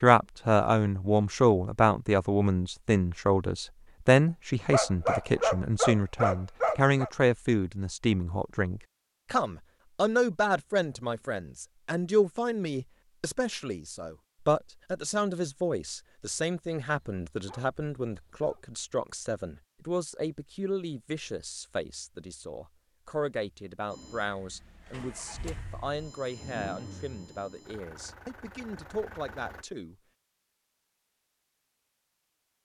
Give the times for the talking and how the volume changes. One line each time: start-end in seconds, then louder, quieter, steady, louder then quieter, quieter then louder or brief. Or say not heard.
0.0-29.9 quieter.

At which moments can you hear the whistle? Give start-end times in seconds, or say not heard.
not heard.